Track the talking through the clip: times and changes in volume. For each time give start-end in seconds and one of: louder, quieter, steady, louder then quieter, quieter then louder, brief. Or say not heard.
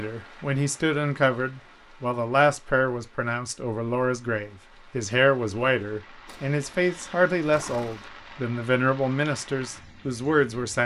0.0-10.8 steady.